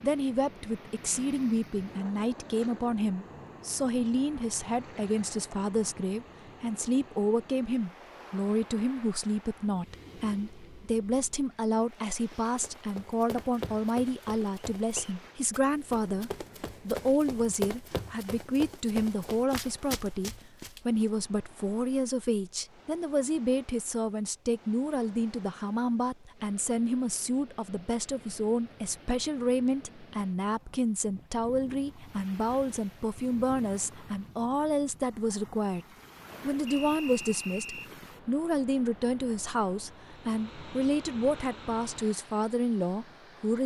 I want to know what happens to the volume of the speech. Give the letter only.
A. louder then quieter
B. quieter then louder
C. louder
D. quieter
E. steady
E.